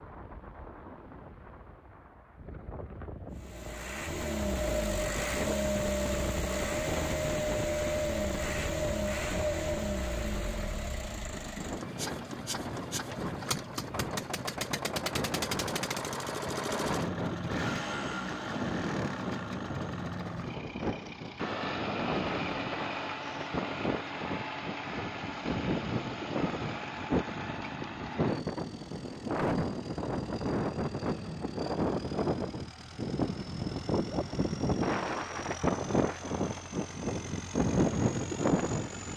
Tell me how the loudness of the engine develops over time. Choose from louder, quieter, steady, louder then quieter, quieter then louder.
quieter.